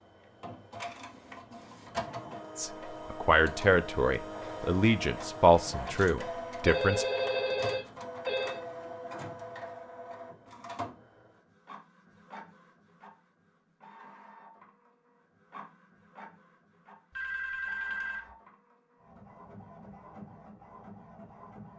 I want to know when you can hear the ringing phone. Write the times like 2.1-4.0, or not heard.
6.7-8.6, 17.1-18.3.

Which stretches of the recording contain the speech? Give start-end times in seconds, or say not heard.
2.5-7.0.